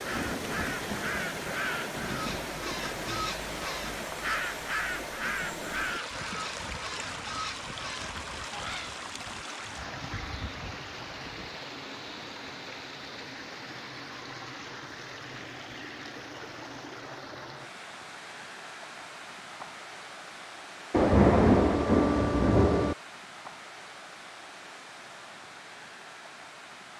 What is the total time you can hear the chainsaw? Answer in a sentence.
You can't hear the chainsaw here.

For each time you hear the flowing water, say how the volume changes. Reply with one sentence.
The flowing water can be heard from 0.0 to 26.9 s, getting quieter.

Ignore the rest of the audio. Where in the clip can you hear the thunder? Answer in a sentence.
You can hear the thunder from 0.1 to 3.2 s and from 20.9 to 22.9 s.